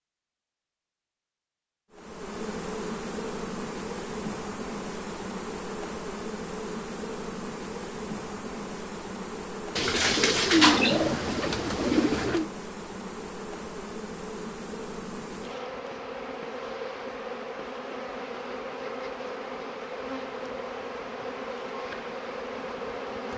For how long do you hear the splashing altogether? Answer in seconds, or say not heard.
not heard.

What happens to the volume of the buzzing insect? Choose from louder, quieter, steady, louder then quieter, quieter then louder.
steady.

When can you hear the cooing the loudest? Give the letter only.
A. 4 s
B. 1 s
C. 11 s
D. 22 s
C.